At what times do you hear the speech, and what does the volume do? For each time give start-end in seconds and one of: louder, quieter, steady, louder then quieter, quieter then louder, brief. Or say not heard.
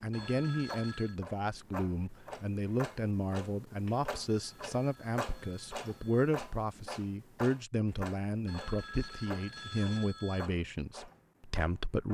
0.0-12.0 steady.